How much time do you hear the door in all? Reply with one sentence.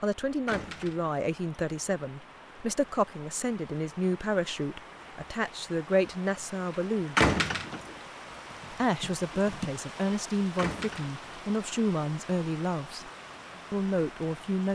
The door can be heard for 2 seconds in total.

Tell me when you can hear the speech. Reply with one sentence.
You can hear the speech from 0.0 to 7.2 s, from 8.7 to 13.1 s and from 13.7 to 14.7 s.